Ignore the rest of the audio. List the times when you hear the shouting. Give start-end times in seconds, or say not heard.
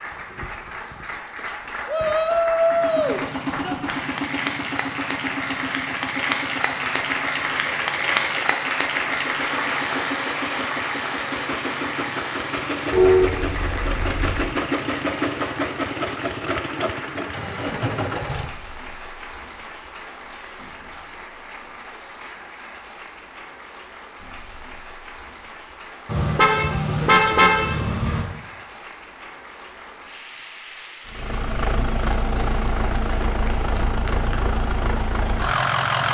1.9-3.8.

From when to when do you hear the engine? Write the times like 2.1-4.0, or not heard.
2.6-18.5, 31.1-36.0.